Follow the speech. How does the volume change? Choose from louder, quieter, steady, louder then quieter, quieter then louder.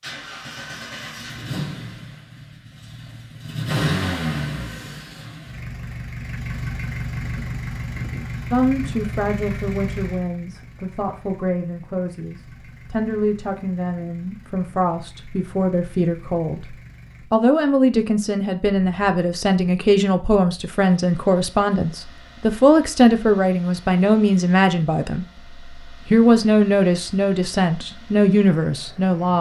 louder.